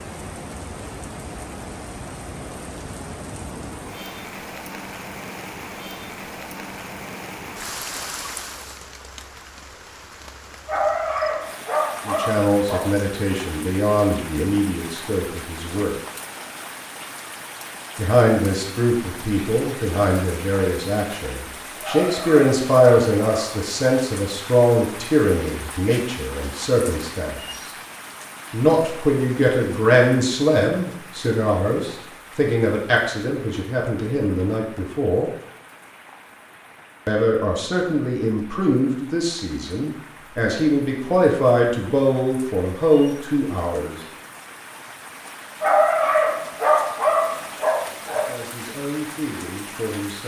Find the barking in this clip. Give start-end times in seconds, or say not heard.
10.7-12.9, 21.8-23.6, 45.6-48.3.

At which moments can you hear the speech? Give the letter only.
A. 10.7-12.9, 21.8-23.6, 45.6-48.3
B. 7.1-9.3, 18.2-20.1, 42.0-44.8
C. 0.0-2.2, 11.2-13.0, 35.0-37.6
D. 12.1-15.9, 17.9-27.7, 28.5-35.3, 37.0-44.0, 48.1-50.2
D.